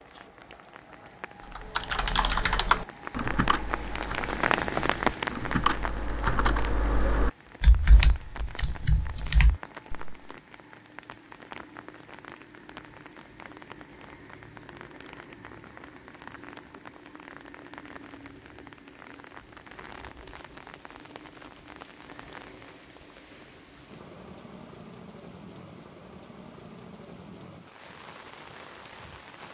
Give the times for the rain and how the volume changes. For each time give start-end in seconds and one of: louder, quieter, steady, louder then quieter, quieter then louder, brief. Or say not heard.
0.0-29.4 quieter.